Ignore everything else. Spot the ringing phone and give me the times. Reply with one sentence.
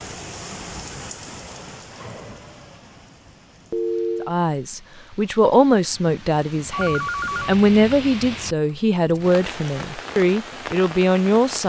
You can hear the ringing phone from 3.7 to 4.3 s and from 6.7 to 7.5 s.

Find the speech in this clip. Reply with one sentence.
You can hear the speech from 4.2 to 11.6 s.